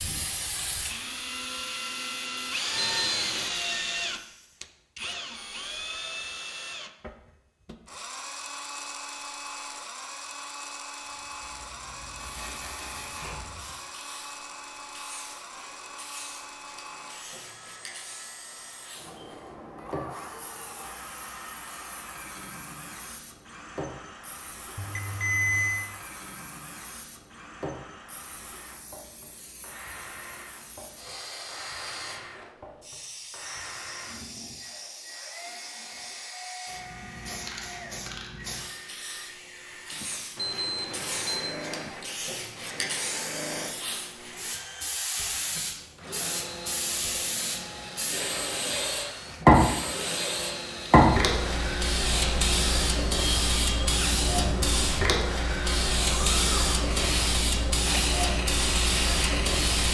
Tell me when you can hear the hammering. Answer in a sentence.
You can't hear the hammering here.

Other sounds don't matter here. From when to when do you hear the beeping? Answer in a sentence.
The beeping can be heard from 2.8 to 3.5 s, from 24.8 to 25.9 s and from 40.4 to 41.6 s.